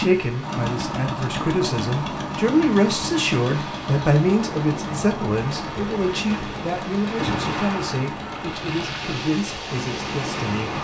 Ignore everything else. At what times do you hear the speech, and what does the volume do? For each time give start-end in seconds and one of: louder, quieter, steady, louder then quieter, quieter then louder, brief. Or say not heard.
0.0-10.7 louder then quieter.